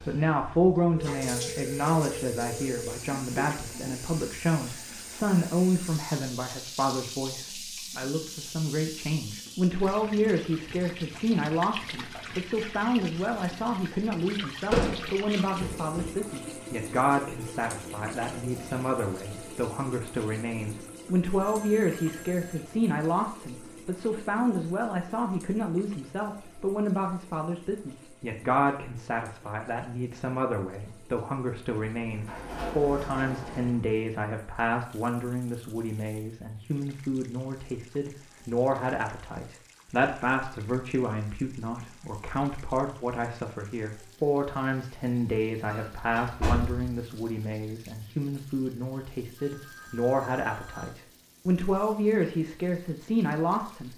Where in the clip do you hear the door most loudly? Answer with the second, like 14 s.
15 s.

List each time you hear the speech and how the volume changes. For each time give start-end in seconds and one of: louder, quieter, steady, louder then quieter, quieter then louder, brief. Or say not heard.
0.0-53.9 steady.